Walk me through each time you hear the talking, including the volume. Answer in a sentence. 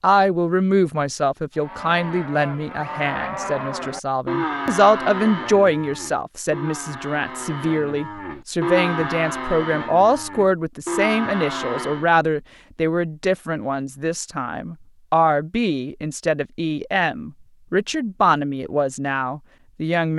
The talking can be heard from 0.0 to 20.1 s, at a steady volume.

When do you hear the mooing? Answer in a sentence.
You can hear the mooing from 1.6 to 12.1 s.